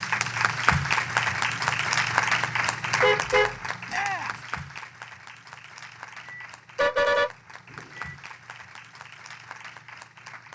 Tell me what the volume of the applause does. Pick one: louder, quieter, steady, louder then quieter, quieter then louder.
quieter.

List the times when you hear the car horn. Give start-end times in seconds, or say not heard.
3.0-3.5, 6.2-8.2.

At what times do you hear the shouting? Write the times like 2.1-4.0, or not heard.
3.9-4.4.